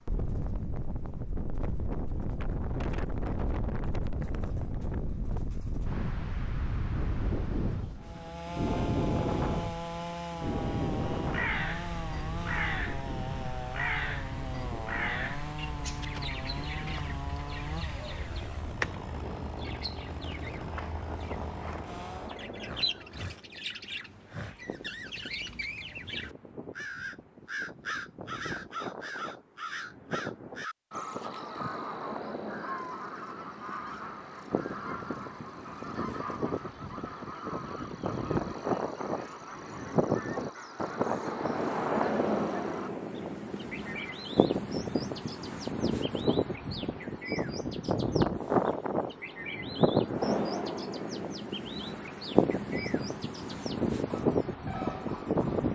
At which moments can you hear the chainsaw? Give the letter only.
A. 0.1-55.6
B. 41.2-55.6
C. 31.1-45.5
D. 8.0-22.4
D.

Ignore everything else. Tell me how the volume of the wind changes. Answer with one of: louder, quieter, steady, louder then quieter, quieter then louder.
quieter then louder.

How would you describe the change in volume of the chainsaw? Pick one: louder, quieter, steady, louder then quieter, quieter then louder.
quieter.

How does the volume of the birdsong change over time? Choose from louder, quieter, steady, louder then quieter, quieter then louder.
quieter.